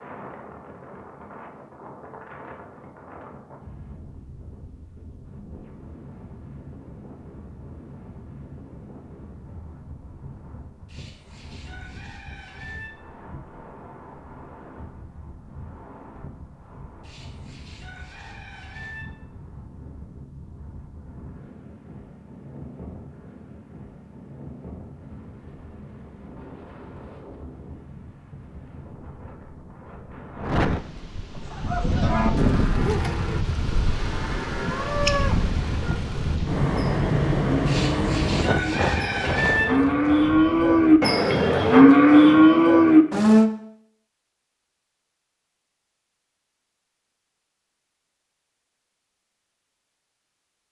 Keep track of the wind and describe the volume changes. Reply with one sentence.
The loudness of the wind goes up.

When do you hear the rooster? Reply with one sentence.
The rooster can be heard from 10.8 to 12.9 s, from 17.0 to 19.1 s and from 37.6 to 39.6 s.